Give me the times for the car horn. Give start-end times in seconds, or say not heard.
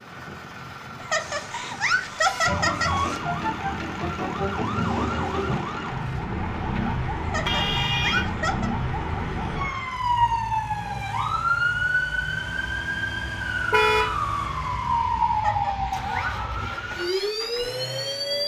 1.1-3.2, 7.4-8.3, 13.7-14.2.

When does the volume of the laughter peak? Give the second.
2 s.